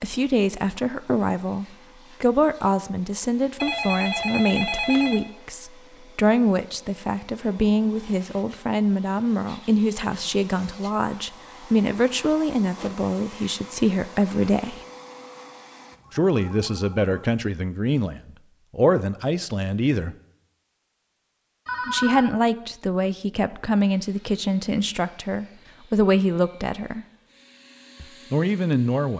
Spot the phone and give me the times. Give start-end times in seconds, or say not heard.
3.6-5.2, 15.9-17.4, 21.6-22.3.